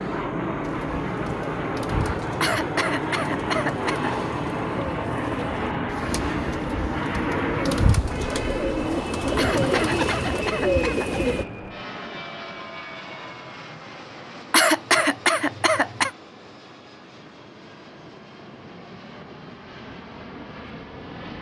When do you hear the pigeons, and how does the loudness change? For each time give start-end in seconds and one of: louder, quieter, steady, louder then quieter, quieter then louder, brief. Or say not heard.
0.6-11.4 louder.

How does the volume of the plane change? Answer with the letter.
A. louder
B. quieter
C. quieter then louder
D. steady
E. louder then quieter
B.